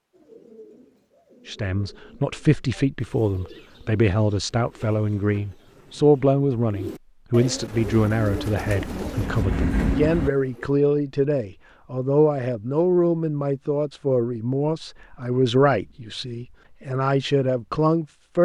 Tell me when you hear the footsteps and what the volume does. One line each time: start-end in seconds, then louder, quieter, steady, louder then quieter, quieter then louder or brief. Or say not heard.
not heard.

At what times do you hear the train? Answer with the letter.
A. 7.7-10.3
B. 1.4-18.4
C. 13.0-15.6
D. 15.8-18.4
A.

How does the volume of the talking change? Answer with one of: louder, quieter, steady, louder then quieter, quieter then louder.
steady.